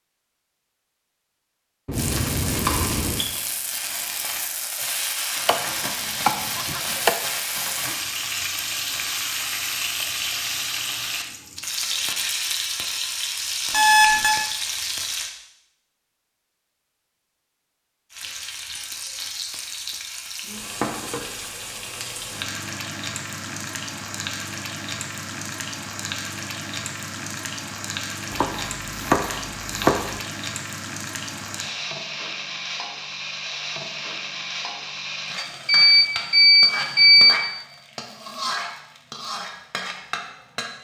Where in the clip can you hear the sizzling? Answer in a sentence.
You can hear the sizzling from 1.9 to 15.3 s and from 18.1 to 40.7 s.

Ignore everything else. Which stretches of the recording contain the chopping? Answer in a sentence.
The chopping can be heard from 5.5 to 7.2 s and from 28.3 to 30.2 s.